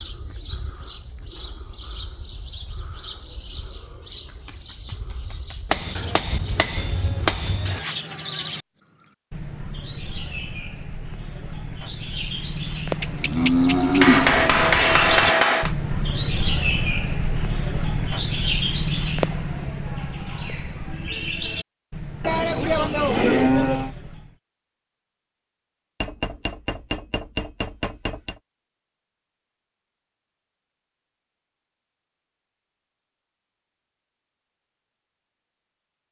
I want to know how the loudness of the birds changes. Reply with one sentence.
The volume of the birds goes up, then down.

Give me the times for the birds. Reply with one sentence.
The birds can be heard from 0.0 to 24.4 s.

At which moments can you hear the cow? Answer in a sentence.
You can hear the cow from 13.0 to 14.6 s and from 22.2 to 23.9 s.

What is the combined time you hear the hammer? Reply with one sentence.
The hammer can be heard for 6 seconds in total.